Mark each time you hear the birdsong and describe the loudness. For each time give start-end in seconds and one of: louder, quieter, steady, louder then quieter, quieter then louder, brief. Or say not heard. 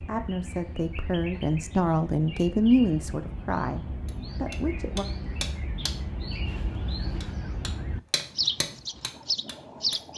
0.0-10.1 louder.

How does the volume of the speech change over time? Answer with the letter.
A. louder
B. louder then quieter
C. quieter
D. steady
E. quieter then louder
B.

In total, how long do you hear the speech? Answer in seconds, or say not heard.
5 s.